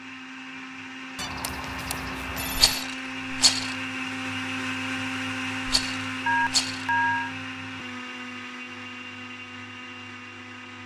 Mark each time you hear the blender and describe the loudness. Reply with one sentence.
You can hear the blender from 0.0 to 10.8 s, getting louder then quieter.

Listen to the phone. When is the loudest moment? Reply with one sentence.
The loudest moment of the phone is at 7 seconds.